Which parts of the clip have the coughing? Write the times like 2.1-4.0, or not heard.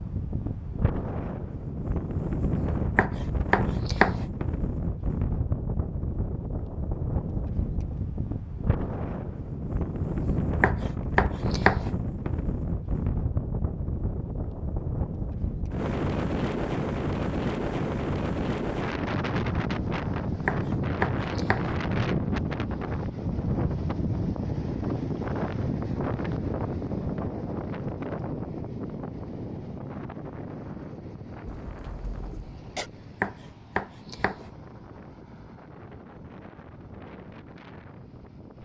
31.4-32.9.